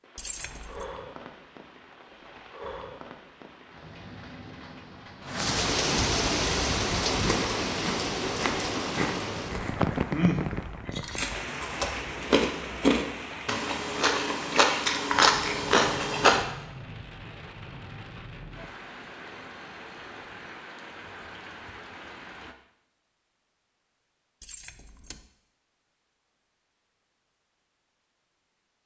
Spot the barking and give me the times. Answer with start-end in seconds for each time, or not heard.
not heard.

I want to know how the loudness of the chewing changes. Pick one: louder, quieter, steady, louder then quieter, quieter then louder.
louder.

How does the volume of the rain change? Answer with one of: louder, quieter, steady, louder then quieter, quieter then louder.
louder then quieter.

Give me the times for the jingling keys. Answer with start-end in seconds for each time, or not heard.
0.1-0.8, 24.4-25.2.